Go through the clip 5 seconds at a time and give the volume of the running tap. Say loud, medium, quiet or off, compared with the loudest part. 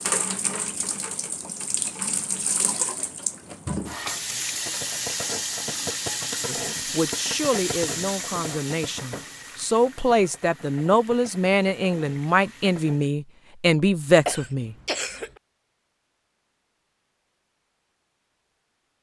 loud, loud, quiet, off.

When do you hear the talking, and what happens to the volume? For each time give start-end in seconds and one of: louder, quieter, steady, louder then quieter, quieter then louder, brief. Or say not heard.
6.5-14.8 louder.